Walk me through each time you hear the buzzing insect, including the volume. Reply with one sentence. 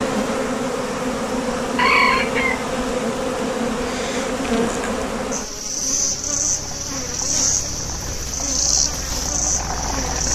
The buzzing insect can be heard from 0.0 to 10.3 s, at a steady volume.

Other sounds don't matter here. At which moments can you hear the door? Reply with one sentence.
The door can't be heard in this clip.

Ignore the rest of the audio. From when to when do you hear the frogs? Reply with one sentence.
The frogs can't be heard in this clip.